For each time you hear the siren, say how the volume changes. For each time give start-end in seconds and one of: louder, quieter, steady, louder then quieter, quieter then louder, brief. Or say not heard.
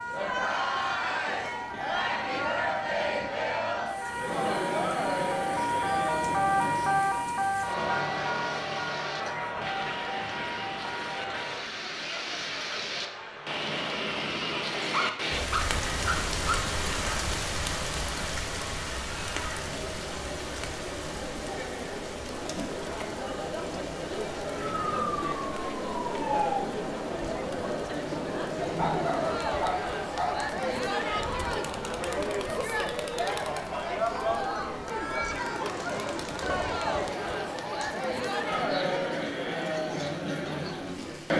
0.0-11.6 louder then quieter
24.5-26.6 brief.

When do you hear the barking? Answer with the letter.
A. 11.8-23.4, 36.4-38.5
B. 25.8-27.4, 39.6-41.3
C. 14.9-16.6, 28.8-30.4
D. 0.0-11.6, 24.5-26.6
C.